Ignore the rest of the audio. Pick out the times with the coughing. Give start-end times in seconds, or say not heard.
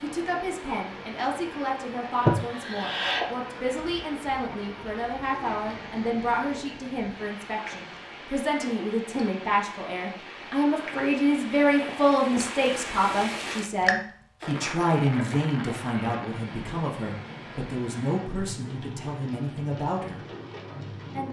2.2-3.2.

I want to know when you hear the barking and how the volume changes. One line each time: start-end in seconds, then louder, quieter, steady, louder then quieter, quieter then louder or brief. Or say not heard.
not heard.